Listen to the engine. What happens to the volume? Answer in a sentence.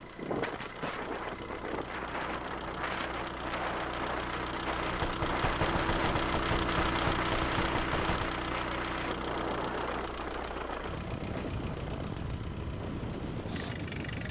The volume of the engine goes up, then down.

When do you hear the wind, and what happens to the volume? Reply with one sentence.
The wind can be heard from 0.0 to 14.2 s, at a steady volume.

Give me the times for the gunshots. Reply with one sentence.
You can hear the gunshots from 4.9 to 8.3 s.